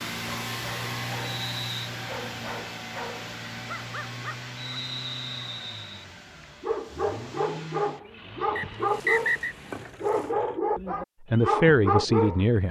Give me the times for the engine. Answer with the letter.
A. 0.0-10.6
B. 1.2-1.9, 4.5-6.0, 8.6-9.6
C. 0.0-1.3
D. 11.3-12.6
A.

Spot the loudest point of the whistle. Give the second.
9 s.